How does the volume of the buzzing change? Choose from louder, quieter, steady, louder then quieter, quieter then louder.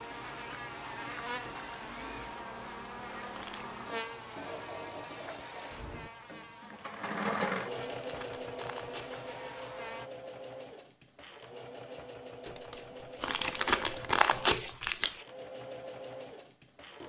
quieter.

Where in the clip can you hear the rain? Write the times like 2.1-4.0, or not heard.
not heard.